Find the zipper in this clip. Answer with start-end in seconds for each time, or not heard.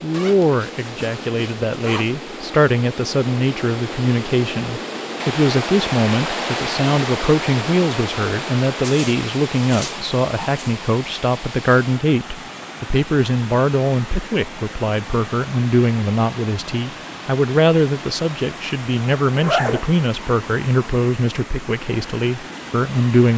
0.1-2.1, 8.8-10.5, 19.2-20.0.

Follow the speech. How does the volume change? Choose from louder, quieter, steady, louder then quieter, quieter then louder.
steady.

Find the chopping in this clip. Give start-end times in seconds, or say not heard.
not heard.